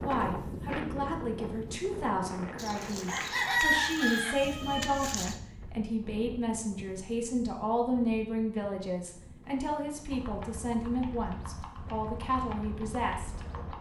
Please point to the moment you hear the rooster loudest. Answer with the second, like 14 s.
4 s.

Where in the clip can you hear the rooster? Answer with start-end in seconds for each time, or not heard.
2.5-5.3.